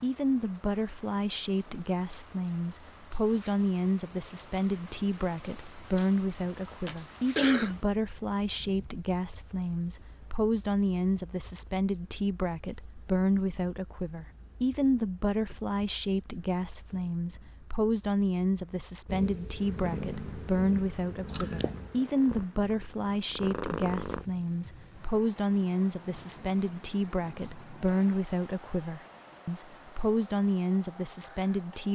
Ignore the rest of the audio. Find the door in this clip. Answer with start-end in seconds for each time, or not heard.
not heard.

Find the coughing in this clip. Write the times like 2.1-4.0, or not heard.
6.5-7.8.